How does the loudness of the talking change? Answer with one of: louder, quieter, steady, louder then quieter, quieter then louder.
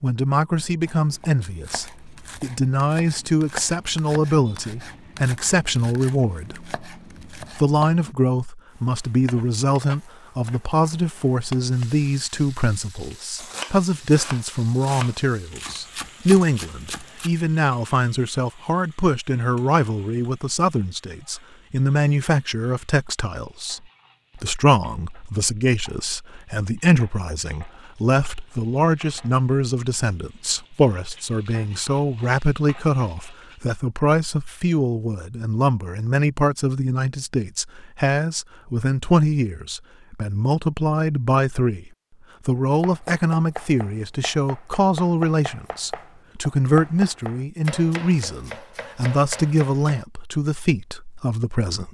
steady.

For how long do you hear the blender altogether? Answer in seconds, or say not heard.
not heard.